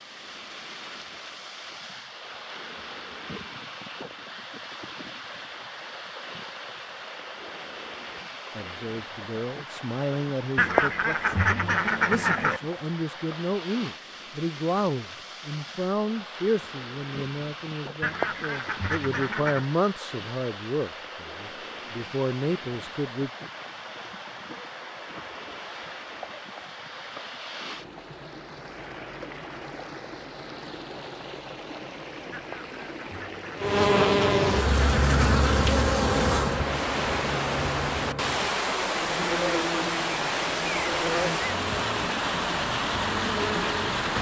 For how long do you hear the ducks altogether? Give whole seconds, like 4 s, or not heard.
5 s.